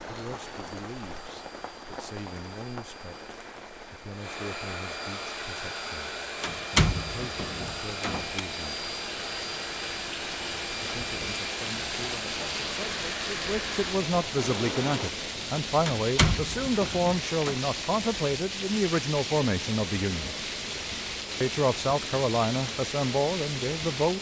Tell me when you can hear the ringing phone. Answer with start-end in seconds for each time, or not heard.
not heard.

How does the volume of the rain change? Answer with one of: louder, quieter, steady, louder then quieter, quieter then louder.
louder.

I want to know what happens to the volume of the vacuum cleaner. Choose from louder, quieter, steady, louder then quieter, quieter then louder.
louder.